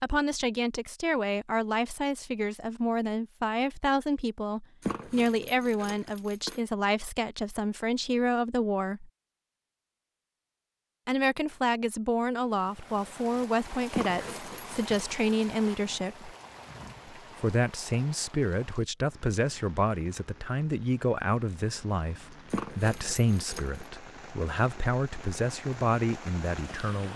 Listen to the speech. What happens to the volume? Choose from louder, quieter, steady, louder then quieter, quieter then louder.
steady.